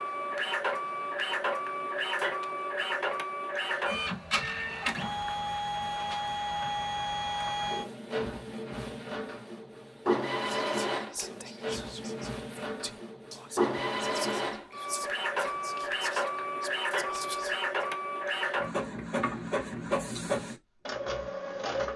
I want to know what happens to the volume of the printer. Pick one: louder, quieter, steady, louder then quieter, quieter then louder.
steady.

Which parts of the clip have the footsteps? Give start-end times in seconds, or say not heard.
not heard.